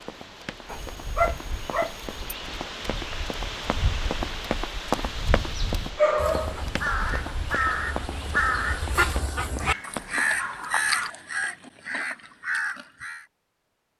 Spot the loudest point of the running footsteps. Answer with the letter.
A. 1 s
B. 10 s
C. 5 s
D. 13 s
C.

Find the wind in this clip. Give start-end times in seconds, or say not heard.
0.0-9.1.